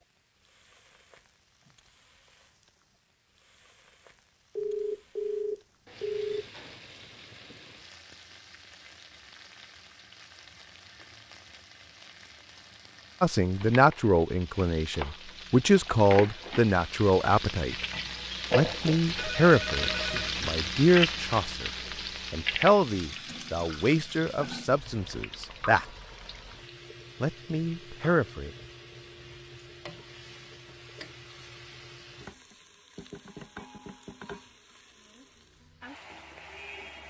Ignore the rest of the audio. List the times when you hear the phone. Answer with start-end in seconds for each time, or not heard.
4.5-6.5, 19.1-20.4.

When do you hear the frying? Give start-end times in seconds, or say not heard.
0.0-37.0.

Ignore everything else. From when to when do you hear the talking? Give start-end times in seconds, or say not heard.
13.2-17.8, 18.6-21.7, 22.3-25.9, 27.2-28.5.